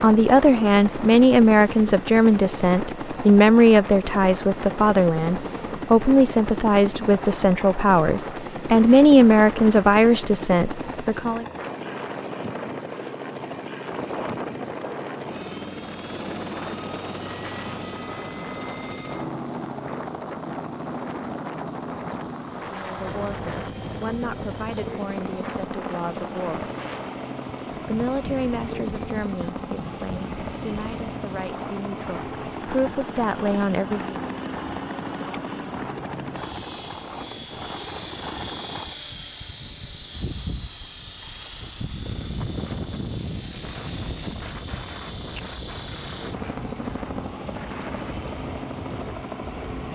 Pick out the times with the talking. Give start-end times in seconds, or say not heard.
0.0-11.4, 22.7-26.7, 27.9-34.2.